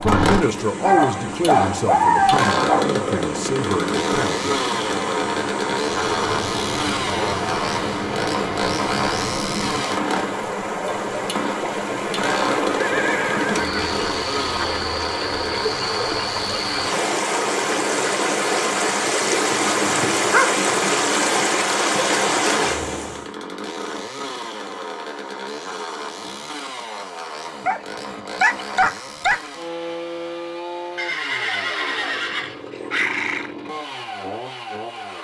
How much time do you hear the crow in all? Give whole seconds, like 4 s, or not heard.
not heard.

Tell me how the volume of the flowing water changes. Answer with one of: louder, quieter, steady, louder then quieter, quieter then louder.
louder.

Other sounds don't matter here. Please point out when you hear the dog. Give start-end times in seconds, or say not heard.
0.8-2.9, 19.5-20.8, 27.6-29.5.